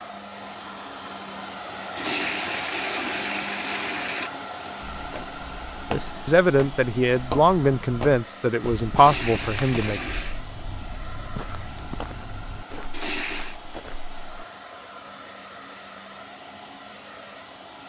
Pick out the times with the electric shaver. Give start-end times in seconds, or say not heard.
not heard.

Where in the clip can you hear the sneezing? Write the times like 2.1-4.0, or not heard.
not heard.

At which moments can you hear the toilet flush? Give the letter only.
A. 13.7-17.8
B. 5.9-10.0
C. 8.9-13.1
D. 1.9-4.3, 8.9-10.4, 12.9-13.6
D.